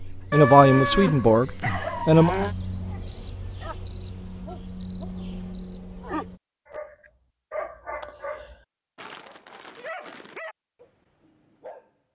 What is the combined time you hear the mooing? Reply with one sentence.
The mooing can be heard for 2 seconds in total.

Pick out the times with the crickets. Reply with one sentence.
You can hear the crickets from 0.0 to 6.3 s.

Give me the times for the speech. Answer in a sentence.
The speech can be heard from 0.1 to 2.4 s.